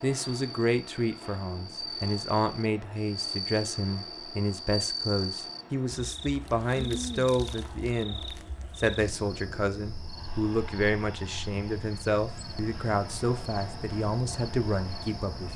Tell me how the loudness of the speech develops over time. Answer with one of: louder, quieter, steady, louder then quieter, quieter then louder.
steady.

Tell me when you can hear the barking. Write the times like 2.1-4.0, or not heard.
not heard.